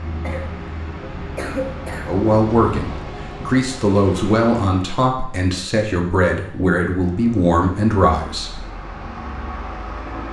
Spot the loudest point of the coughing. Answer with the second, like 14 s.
2 s.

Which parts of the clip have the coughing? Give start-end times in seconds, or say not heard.
0.2-2.1.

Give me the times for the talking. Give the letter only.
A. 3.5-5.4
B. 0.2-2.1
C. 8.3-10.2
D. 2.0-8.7
D.